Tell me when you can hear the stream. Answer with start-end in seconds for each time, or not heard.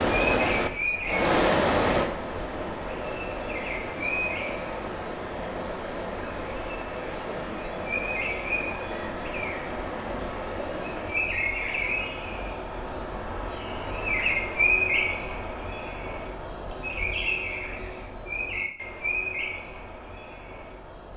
0.0-11.3.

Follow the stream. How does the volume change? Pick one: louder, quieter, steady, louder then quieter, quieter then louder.
quieter.